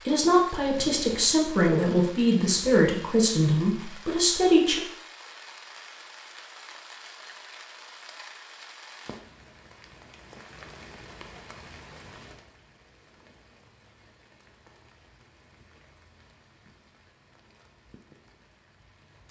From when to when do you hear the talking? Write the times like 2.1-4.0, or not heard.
0.1-4.8.